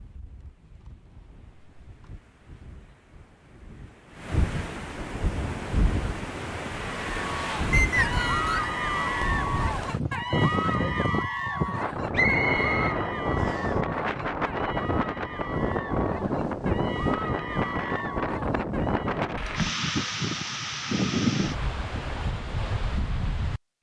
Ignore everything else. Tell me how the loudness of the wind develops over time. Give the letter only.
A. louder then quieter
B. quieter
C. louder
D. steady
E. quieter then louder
C.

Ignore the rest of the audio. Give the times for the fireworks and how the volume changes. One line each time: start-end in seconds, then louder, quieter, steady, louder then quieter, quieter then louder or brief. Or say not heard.
not heard.